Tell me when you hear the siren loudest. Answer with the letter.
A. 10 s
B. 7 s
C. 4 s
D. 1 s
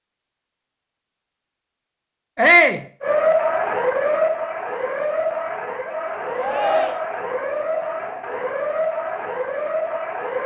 C.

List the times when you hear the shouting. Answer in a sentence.
The shouting can be heard from 2.4 to 2.9 s and from 6.3 to 7.0 s.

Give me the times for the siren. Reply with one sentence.
You can hear the siren from 3.0 to 10.4 s.